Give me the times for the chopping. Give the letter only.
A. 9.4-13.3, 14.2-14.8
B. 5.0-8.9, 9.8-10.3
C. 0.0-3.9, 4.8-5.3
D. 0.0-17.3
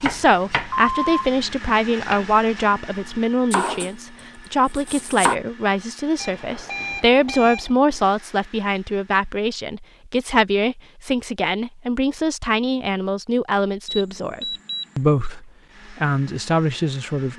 C.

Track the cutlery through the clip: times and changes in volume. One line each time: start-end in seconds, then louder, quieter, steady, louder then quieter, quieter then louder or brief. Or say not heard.
not heard.